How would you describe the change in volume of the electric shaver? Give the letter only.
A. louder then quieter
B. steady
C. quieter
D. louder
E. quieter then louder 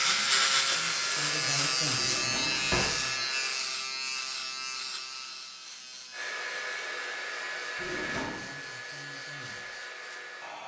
C.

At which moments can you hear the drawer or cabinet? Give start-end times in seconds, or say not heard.
1.9-3.0, 7.8-8.4.